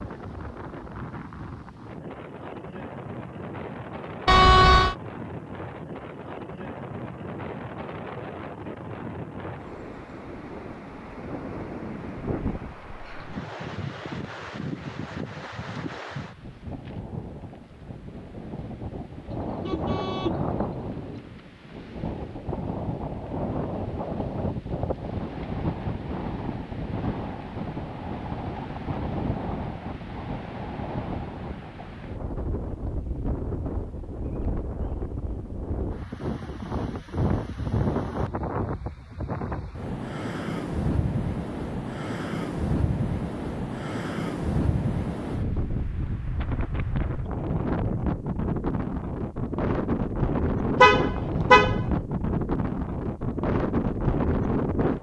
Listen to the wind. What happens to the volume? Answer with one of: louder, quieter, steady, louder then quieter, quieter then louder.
louder.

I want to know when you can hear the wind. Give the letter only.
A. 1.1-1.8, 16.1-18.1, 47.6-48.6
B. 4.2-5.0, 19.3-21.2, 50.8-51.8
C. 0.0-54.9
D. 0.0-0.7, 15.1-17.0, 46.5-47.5
C.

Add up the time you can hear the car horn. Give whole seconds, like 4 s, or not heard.
4 s.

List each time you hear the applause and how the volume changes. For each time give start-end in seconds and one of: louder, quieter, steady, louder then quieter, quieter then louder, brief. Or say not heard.
not heard.